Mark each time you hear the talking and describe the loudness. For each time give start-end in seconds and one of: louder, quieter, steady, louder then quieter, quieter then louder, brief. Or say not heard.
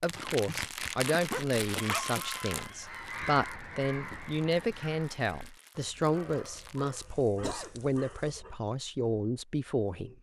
0.0-10.1 steady.